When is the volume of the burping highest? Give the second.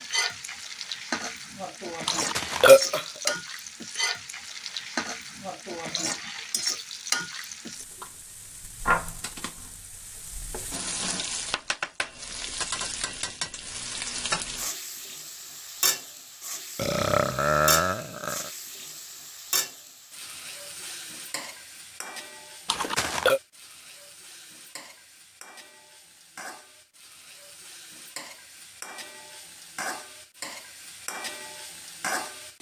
3 s.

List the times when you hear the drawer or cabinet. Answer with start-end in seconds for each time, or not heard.
not heard.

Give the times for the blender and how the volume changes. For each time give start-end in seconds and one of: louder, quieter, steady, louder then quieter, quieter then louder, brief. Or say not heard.
not heard.